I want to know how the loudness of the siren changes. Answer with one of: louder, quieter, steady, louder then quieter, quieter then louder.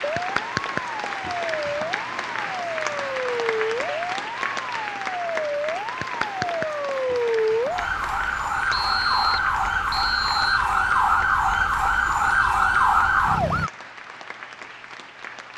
louder.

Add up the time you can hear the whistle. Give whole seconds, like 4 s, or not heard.
2 s.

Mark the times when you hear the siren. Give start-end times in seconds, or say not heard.
0.0-13.7.